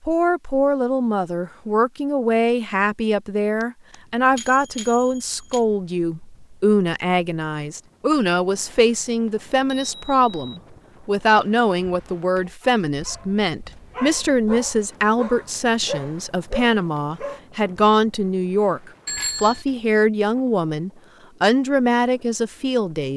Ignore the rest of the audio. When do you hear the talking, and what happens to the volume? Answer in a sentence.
You can hear the talking from 0.1 to 23.1 s, at a steady volume.